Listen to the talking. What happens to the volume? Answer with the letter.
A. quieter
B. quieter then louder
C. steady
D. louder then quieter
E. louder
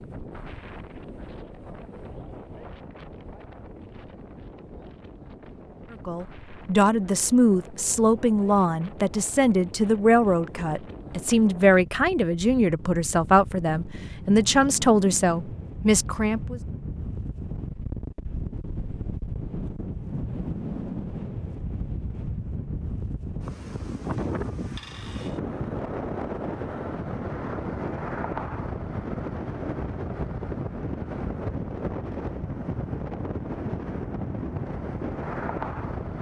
C.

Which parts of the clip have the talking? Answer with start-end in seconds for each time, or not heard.
5.9-16.6.